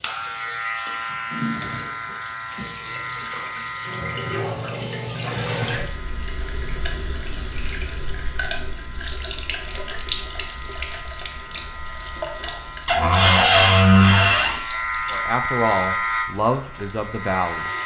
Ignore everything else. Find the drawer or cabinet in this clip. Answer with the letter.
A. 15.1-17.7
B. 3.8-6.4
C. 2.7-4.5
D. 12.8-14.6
D.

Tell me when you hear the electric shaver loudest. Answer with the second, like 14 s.
16 s.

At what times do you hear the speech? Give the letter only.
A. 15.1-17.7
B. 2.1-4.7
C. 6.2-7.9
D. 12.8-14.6
A.